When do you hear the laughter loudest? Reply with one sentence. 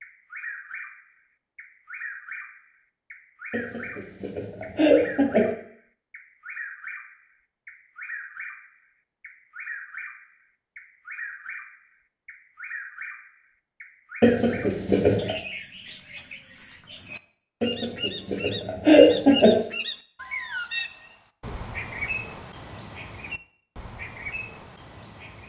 The volume of the laughter peaks at 19 seconds.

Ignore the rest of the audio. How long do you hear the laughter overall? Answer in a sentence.
The laughter can be heard for 5 seconds in total.